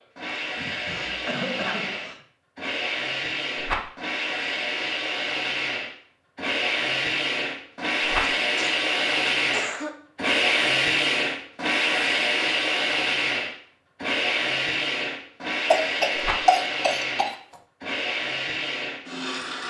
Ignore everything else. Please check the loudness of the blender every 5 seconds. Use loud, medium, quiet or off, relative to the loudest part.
medium, loud, loud, medium.